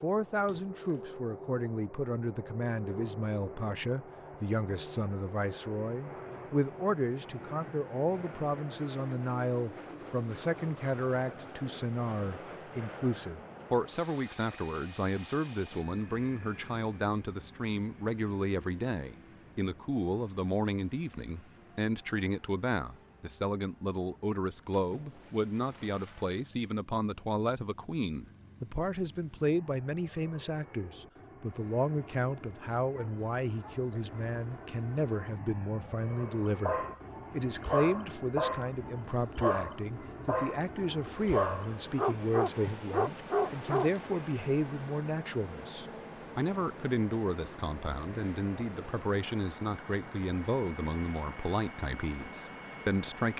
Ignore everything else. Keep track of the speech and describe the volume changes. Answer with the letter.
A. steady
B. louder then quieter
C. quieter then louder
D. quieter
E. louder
A.